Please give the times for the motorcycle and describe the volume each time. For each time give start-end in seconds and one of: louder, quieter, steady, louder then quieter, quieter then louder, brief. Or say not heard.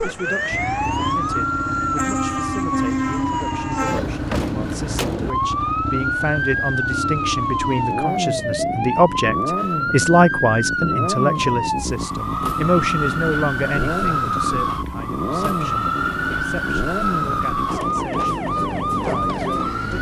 0.0-19.9 steady.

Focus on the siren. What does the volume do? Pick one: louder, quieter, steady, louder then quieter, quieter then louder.
steady.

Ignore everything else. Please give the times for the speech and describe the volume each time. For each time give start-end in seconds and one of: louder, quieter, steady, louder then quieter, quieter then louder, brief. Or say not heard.
0.0-19.9 louder then quieter.